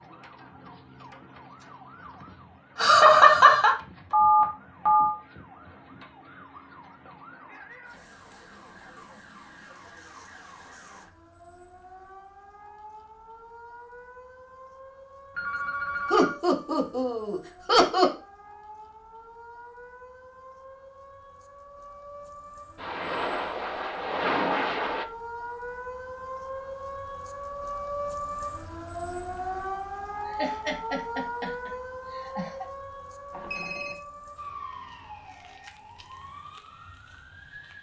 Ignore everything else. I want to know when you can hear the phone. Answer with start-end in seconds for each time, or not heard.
4.1-5.2, 15.3-16.4, 33.3-34.0.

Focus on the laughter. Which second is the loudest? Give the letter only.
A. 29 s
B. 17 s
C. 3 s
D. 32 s
C.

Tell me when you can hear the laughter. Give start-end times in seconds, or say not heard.
2.8-3.8, 16.1-18.1, 30.2-32.6.